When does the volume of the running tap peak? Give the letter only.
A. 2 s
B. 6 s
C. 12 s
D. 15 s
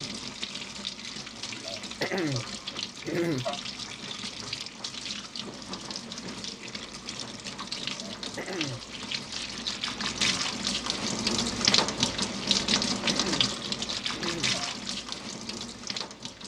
C.